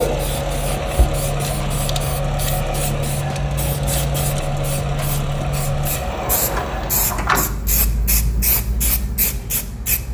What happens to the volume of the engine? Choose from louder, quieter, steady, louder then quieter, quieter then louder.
steady.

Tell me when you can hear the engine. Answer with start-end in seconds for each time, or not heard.
0.0-6.9.